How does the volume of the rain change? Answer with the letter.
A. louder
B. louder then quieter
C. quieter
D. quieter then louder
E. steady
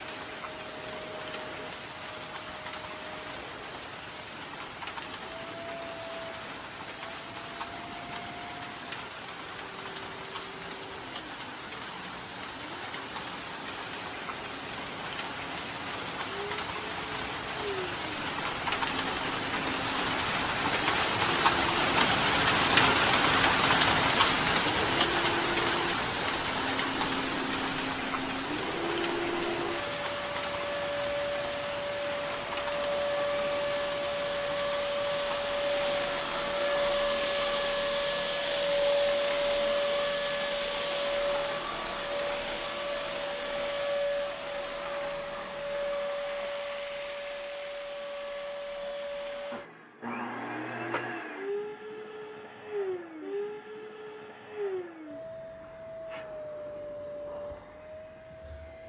B.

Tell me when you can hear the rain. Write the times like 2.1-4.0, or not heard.
0.0-36.2.